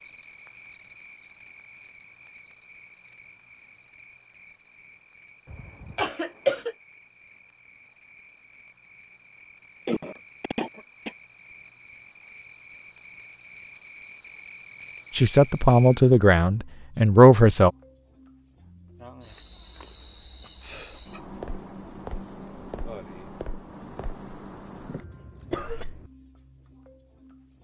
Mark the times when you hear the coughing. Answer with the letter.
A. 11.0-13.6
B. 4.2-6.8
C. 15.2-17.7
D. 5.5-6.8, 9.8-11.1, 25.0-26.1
D.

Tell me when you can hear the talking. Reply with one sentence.
You can hear the talking from 15.2 to 17.7 s.